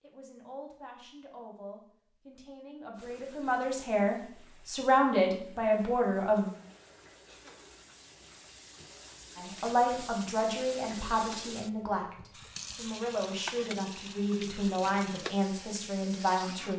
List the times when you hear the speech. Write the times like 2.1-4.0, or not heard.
0.0-6.5, 9.3-16.7.